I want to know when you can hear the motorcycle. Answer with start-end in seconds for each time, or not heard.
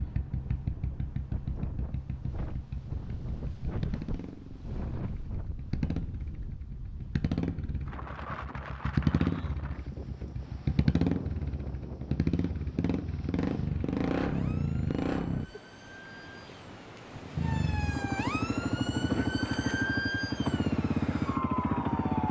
0.0-15.4, 17.4-22.2.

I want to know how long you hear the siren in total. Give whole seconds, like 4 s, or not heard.
8 s.